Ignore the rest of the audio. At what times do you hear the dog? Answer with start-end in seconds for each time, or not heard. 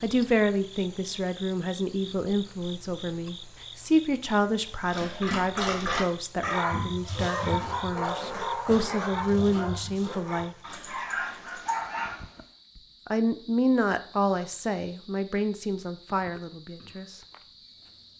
4.9-12.2.